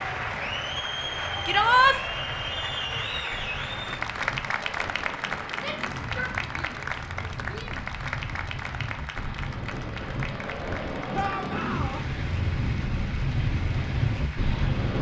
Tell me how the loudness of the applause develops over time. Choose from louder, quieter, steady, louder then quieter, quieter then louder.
quieter.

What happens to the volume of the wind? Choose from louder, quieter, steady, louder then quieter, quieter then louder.
louder.